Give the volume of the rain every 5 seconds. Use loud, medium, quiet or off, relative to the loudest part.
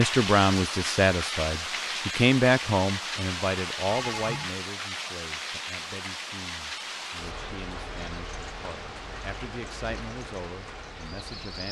loud, medium, medium.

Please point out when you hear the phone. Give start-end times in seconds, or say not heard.
3.9-4.5.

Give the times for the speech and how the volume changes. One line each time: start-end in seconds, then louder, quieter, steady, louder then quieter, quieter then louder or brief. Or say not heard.
0.0-11.6 quieter then louder.